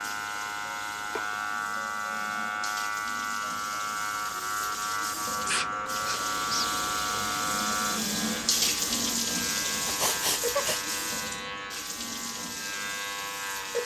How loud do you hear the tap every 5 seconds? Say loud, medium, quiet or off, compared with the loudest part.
medium, loud, medium.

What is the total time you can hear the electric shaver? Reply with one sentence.
The electric shaver can be heard for 14 seconds in total.